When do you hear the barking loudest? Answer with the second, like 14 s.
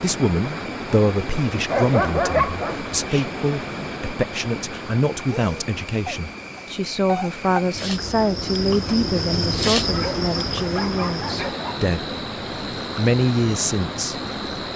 2 s.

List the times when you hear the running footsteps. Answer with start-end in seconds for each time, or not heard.
not heard.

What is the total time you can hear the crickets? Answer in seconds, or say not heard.
15 s.